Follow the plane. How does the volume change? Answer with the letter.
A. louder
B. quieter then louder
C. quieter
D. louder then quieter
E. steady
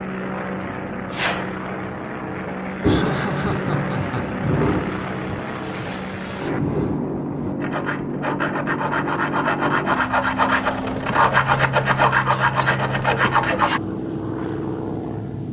E.